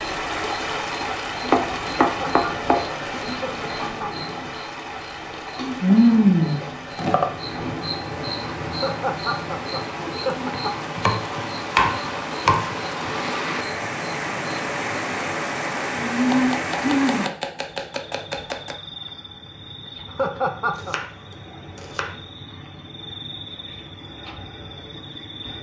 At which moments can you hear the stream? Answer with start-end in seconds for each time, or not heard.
0.0-17.3.